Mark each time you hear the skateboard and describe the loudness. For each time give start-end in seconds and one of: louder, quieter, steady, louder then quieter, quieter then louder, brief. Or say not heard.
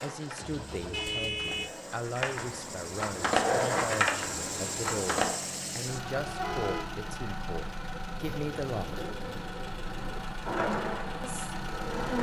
0.0-5.3 louder then quieter
10.4-12.1 brief.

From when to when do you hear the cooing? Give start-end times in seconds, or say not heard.
8.2-10.2.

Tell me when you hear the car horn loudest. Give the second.
1 s.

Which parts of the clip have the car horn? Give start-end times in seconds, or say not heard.
0.4-1.7, 6.4-6.9.